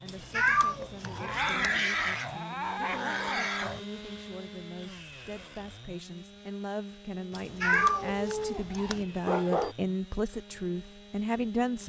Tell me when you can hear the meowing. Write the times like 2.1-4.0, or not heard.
0.1-1.8, 7.3-9.1.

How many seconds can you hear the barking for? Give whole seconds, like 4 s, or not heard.
5 s.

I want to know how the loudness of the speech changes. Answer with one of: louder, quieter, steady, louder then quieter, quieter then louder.
louder.